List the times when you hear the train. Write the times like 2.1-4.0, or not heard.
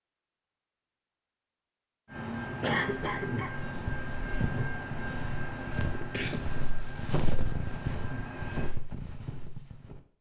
2.0-8.8.